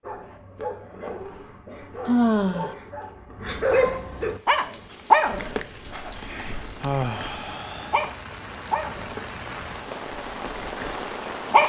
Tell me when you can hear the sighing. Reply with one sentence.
You can hear the sighing from 2.0 to 2.8 s and from 6.1 to 8.0 s.